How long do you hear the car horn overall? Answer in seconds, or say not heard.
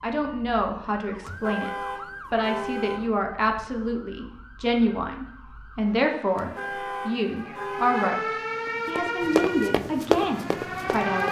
4 s.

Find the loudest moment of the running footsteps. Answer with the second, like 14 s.
10 s.